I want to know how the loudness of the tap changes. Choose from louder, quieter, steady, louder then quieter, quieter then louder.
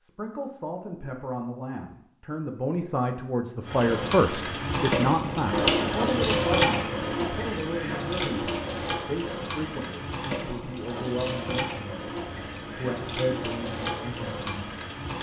quieter.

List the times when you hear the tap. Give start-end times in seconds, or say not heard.
3.6-15.1.